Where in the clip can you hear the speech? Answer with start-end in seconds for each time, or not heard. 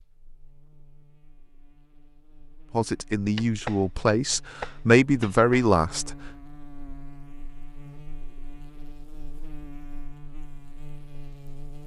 2.7-6.2.